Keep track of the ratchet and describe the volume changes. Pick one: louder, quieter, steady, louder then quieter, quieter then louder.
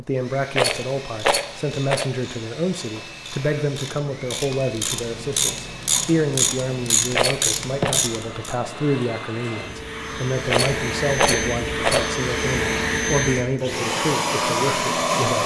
louder.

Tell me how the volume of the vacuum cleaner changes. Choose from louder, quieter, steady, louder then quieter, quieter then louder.
louder.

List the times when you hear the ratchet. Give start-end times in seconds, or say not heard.
0.7-8.6.